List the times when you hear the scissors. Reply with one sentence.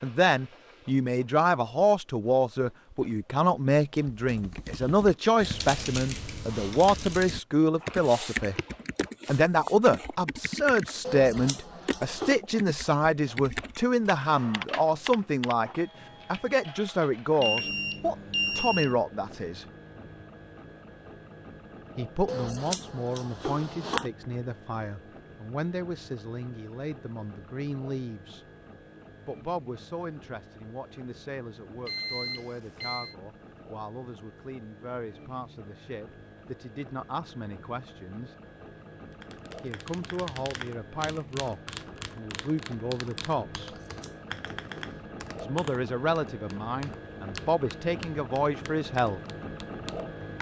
You can hear the scissors from 11.0 to 12.4 s, from 22.2 to 24.1 s and from 43.6 to 45.0 s.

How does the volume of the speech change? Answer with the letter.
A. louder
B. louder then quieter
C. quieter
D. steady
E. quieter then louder
E.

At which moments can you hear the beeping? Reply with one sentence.
You can hear the beeping from 17.4 to 18.9 s and from 31.9 to 33.1 s.